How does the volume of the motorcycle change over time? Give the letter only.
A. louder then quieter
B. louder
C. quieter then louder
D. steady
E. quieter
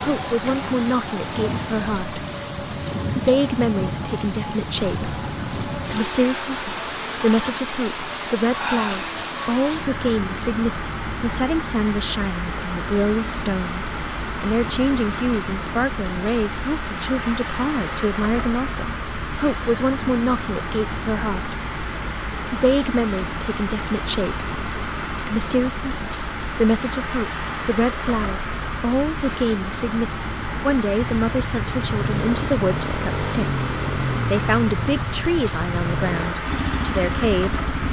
D.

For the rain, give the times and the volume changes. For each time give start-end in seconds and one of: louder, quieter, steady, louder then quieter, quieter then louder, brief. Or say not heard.
0.0-37.8 steady.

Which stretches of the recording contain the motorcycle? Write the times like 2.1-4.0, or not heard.
30.9-37.8.